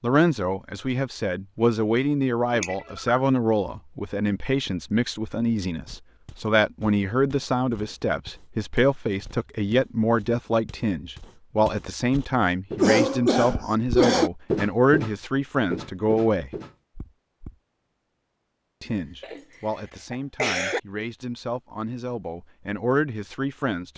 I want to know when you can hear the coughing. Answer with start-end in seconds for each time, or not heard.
2.5-3.2, 12.8-14.3, 18.9-20.8.